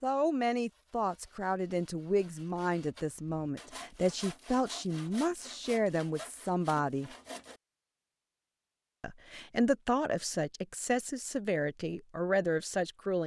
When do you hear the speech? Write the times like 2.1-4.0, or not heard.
0.0-7.1, 9.0-13.2.